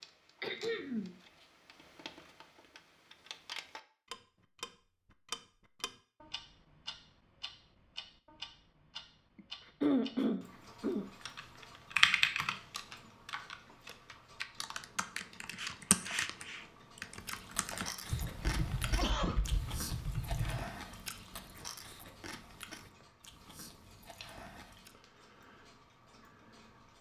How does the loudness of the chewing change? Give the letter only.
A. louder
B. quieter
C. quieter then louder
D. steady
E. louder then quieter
B.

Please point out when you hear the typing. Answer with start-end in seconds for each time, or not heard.
11.2-20.6.